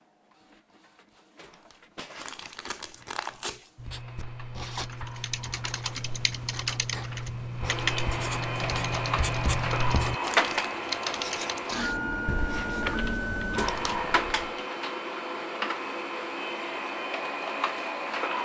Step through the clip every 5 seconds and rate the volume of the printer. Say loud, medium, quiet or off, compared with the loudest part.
quiet, medium, loud, loud.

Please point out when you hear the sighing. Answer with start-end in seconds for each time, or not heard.
not heard.